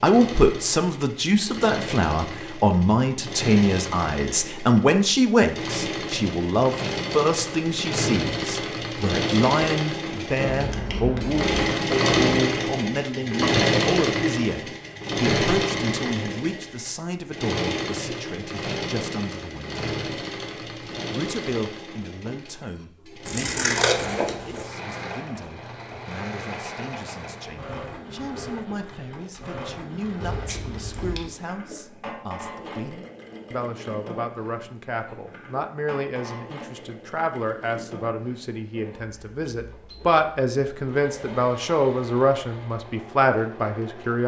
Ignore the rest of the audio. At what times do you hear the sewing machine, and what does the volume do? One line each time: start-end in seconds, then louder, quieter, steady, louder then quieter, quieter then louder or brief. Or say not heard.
0.0-44.2 louder then quieter.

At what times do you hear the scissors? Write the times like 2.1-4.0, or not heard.
10.4-11.6, 23.2-24.6, 30.2-31.2.